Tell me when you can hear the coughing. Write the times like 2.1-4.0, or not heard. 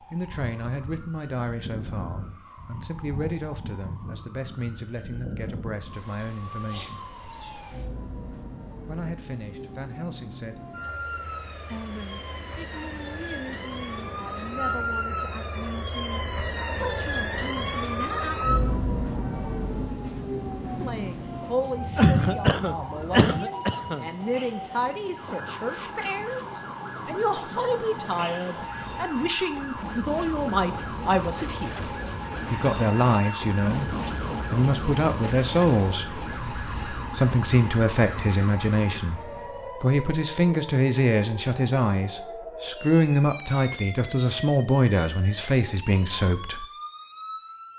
21.9-24.1.